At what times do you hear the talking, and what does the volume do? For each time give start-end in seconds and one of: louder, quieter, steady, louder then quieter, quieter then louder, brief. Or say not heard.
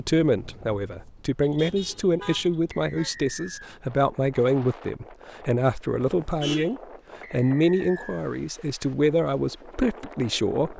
0.0-10.7 steady.